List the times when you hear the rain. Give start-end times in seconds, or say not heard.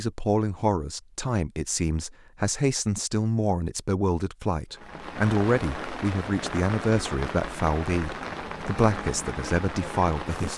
4.7-10.5.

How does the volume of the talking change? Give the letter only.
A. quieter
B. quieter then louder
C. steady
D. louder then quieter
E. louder
C.